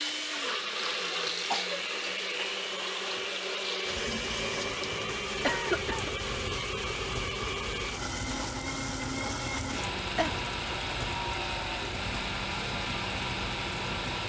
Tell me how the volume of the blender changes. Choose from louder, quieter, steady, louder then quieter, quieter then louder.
steady.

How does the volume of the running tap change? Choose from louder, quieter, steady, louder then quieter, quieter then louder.
steady.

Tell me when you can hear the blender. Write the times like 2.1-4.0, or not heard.
0.0-14.2.